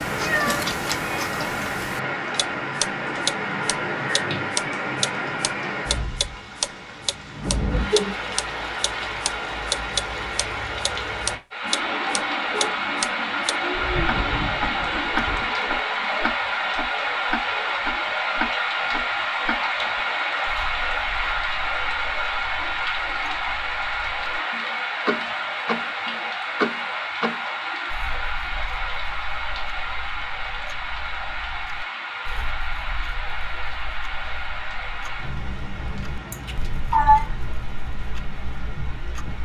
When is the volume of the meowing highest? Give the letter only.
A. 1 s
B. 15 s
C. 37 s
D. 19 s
C.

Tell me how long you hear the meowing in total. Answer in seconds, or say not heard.
4 s.